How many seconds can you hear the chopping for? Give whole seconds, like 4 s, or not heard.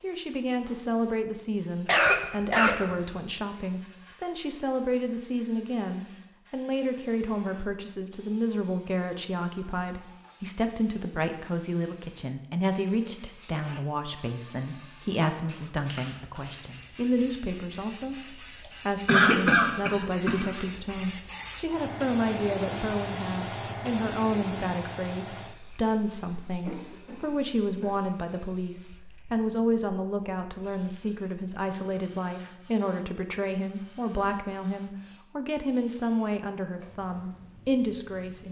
not heard.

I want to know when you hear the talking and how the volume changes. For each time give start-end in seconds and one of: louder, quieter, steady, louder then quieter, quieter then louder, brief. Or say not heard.
0.0-38.4 steady.